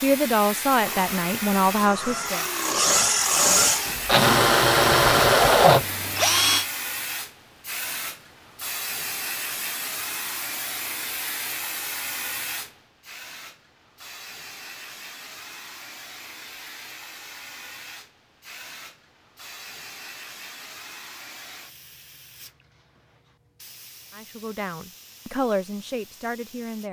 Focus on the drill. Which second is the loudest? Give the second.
5 s.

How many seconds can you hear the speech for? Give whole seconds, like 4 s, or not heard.
5 s.